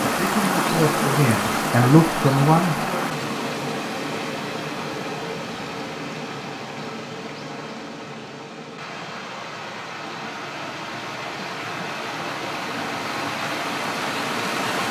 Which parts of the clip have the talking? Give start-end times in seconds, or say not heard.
0.0-3.1.